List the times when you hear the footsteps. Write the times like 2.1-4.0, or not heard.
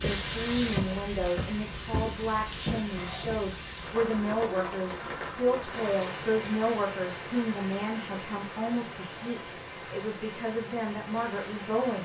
0.0-3.5.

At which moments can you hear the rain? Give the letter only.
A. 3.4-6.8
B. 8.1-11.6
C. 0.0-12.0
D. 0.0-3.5
C.